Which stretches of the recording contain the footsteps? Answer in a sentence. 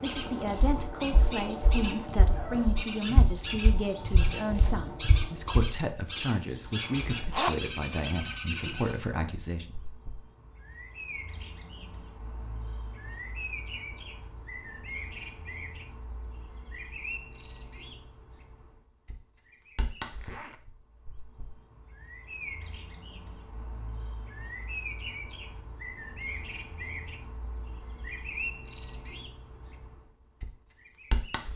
You can hear the footsteps from 0.1 to 5.7 s.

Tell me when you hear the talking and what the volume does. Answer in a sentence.
The talking can be heard from 0.0 to 9.8 s, at a steady volume.